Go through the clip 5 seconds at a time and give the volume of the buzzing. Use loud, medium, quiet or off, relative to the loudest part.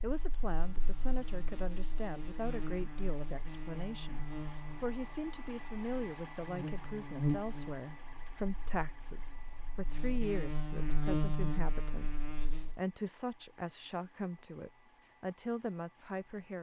medium, loud, loud, off.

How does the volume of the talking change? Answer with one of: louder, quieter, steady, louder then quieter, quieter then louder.
steady.